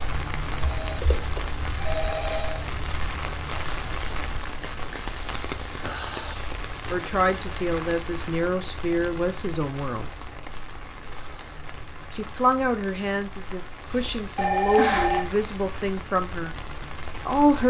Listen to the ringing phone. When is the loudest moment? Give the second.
15 s.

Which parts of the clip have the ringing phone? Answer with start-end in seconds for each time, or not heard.
0.6-2.6, 14.3-15.2.